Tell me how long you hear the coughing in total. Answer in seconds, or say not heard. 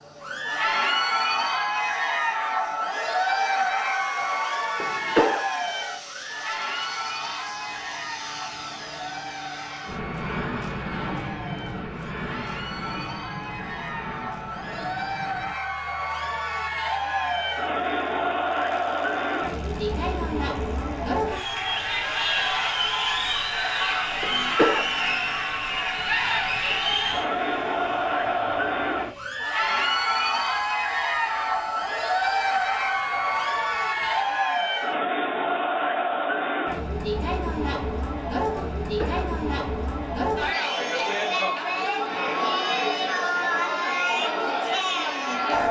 2 s.